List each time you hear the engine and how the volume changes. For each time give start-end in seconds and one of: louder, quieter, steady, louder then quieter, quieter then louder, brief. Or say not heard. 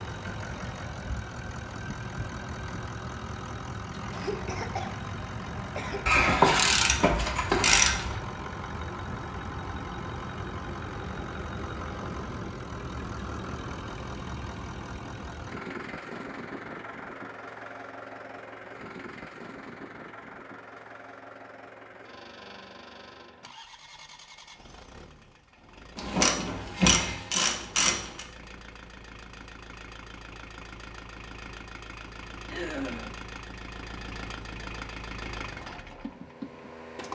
0.0-37.1 quieter then louder.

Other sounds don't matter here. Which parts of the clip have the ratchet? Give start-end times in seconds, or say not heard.
6.0-8.2, 25.9-28.2.